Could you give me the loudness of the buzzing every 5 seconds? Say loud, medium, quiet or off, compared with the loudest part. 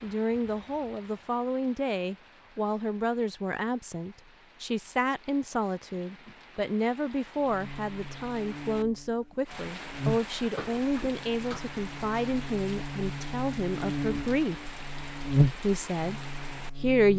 off, quiet, medium, loud.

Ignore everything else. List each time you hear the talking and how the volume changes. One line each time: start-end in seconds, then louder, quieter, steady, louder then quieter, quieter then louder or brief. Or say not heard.
0.0-14.7 steady
15.5-17.1 brief.